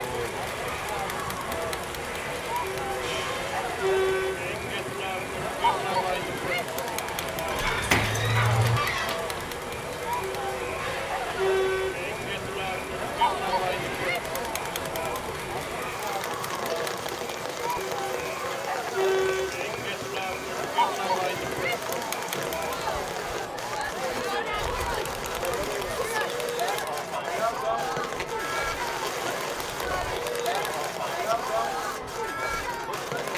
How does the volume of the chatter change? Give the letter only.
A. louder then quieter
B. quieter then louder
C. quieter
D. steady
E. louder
D.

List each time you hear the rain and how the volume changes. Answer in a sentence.
You can hear the rain from 0.0 to 33.3 s, at a steady volume.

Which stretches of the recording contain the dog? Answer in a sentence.
You can hear the dog from 7.5 to 9.2 s.